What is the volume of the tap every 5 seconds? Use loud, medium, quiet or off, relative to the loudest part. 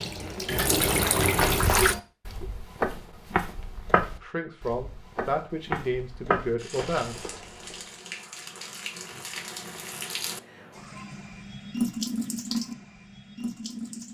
loud, quiet, medium.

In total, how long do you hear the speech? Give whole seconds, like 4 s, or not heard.
3 s.